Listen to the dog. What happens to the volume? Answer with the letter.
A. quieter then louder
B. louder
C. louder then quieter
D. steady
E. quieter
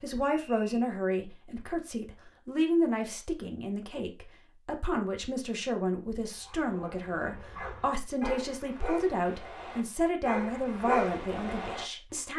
B.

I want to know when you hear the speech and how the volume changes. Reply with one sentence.
You can hear the speech from 0.0 to 12.3 s, at a steady volume.